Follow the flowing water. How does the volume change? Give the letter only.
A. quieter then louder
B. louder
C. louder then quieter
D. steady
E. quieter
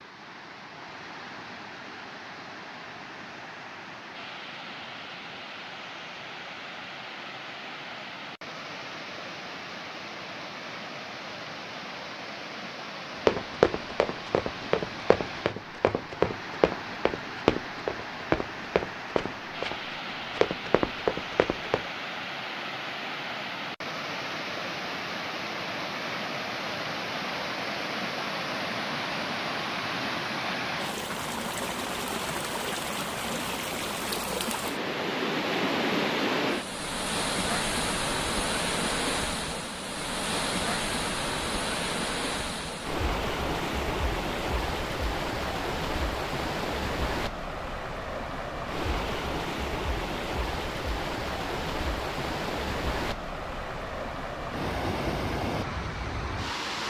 B.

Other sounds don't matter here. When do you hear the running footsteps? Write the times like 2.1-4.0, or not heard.
13.2-21.9.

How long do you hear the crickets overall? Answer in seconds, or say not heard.
not heard.